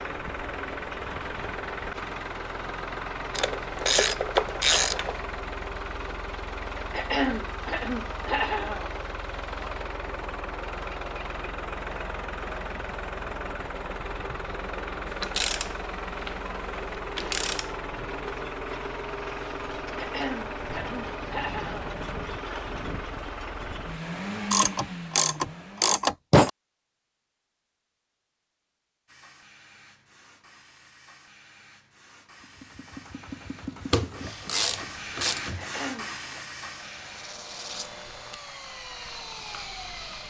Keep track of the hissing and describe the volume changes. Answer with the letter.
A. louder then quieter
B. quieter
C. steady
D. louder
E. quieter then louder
A.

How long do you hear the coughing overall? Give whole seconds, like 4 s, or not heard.
5 s.